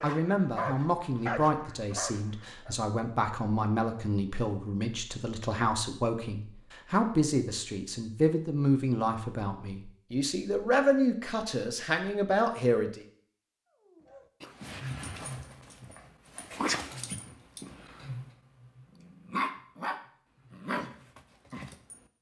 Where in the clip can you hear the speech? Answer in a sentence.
The speech can be heard from 0.0 to 13.0 s.